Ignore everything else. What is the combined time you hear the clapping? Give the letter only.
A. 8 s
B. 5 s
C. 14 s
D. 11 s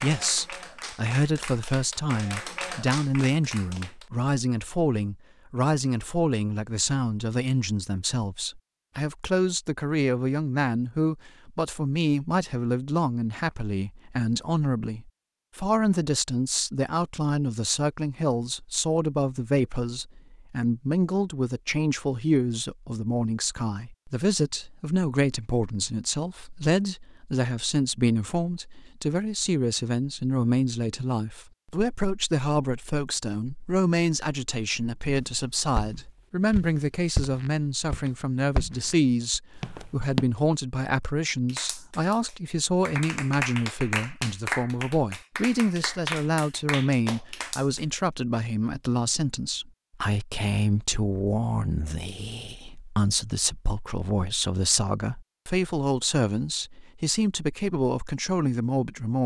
D.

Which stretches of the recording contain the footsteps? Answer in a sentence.
You can hear the footsteps from 35.0 to 40.2 s.